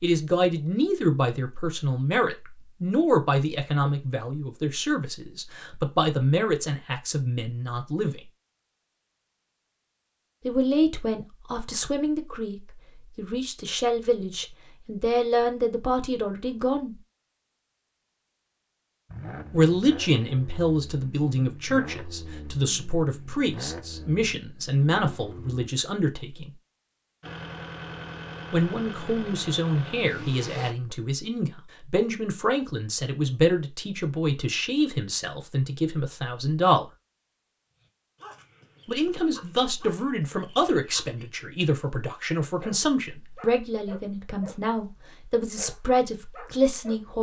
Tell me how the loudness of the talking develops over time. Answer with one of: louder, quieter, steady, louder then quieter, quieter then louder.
steady.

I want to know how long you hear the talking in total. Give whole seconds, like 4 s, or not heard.
38 s.